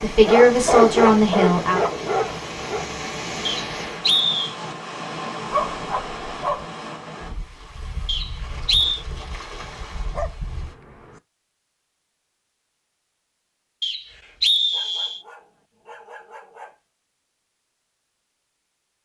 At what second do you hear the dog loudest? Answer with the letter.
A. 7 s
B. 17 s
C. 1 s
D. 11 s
C.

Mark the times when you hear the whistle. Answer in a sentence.
You can hear the whistle from 3.5 to 4.5 s, from 8.1 to 9.1 s and from 13.8 to 15.2 s.